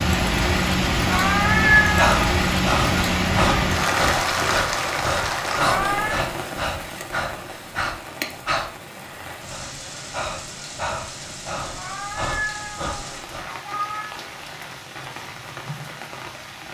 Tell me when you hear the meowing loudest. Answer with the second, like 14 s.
2 s.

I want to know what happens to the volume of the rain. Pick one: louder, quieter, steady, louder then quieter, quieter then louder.
quieter.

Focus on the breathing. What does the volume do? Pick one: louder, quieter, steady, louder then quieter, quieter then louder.
quieter.